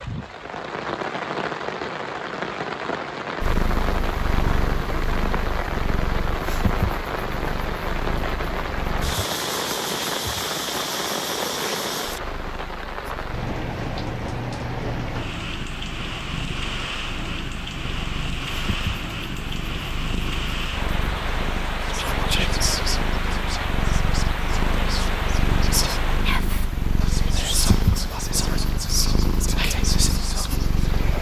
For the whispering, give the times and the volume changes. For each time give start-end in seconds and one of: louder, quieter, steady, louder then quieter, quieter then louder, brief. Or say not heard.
21.8-30.6 quieter then louder.